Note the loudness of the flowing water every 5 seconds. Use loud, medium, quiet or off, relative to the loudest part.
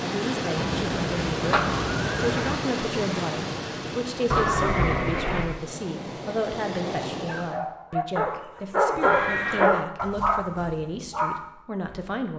loud, medium, off.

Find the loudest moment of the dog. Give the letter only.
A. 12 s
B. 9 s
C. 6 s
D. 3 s
B.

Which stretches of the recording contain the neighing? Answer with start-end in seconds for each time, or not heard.
0.6-2.6, 4.3-5.6, 9.0-9.7.